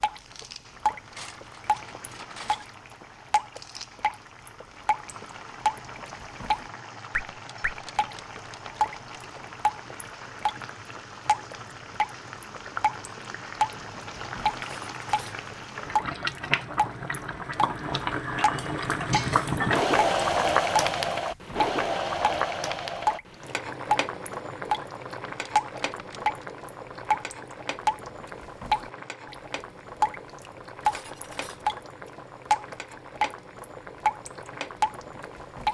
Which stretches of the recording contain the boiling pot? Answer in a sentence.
The boiling pot can be heard from 0.0 to 35.6 s.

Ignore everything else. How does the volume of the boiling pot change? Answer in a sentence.
The volume of the boiling pot goes up, then down.